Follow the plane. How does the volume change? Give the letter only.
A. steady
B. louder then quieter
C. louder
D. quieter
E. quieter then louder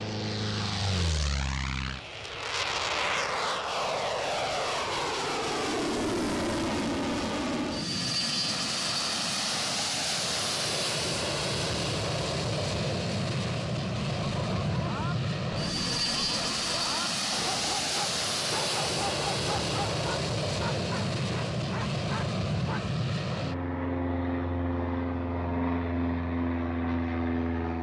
A.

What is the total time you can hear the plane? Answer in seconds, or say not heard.
28 s.